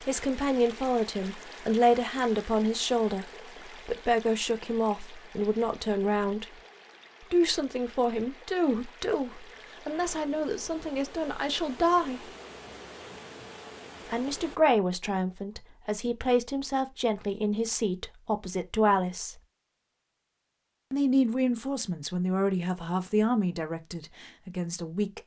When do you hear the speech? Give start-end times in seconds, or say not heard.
0.0-6.6, 7.2-12.3, 14.1-19.4, 20.9-25.2.